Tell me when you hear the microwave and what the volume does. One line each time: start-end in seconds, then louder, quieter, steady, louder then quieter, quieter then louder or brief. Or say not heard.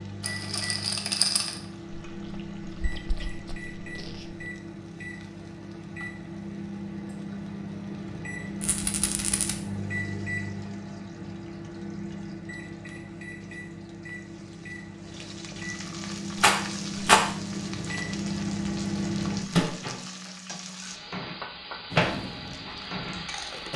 0.0-23.7 louder.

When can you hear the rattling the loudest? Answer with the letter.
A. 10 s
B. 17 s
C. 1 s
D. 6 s
B.